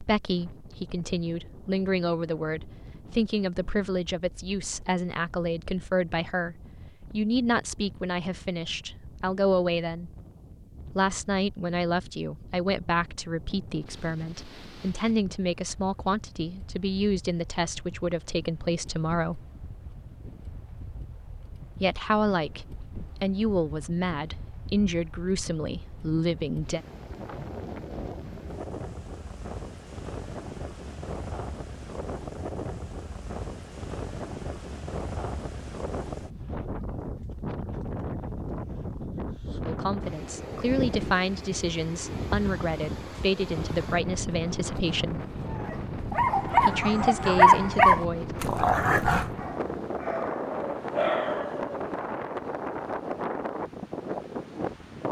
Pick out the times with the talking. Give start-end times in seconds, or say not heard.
0.0-10.1, 10.9-19.4, 21.8-26.8, 39.6-45.2, 46.6-48.4.